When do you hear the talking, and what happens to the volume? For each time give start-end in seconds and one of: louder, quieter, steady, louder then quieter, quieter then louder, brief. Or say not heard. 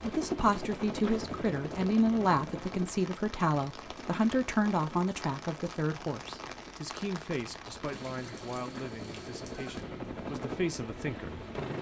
0.0-11.4 quieter.